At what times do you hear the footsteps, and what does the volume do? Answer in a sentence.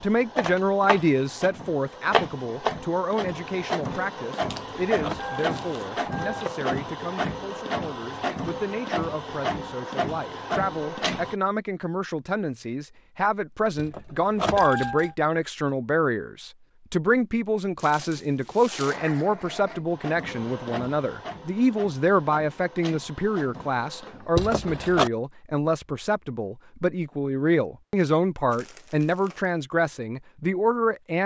You can't hear the footsteps here.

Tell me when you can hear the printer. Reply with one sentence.
The printer can be heard from 0.0 to 11.3 s and from 18.9 to 24.9 s.